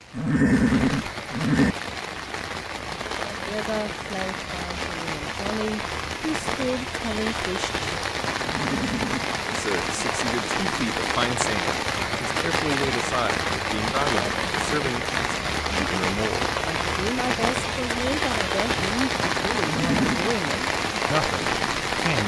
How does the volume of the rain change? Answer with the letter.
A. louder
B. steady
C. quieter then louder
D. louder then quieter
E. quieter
A.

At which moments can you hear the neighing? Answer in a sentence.
The neighing can be heard from 0.1 to 1.8 s, from 8.4 to 9.3 s and from 19.6 to 20.3 s.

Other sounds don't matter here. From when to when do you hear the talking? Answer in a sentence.
You can hear the talking from 3.4 to 8.1 s and from 9.4 to 22.2 s.